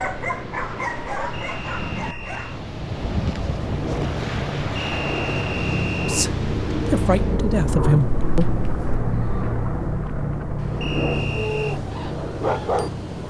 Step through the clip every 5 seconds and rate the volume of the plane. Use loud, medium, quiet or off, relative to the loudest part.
medium, loud, loud.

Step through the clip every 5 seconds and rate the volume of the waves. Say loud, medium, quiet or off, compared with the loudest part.
loud, loud, medium.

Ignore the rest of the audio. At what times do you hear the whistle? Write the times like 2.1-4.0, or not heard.
1.3-2.6, 4.8-6.3, 10.8-11.8.